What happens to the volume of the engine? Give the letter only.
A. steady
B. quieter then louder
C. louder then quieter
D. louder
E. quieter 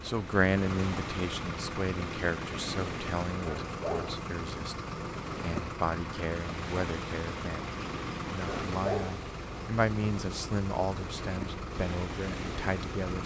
A.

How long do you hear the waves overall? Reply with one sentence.
The waves can be heard for 13 seconds in total.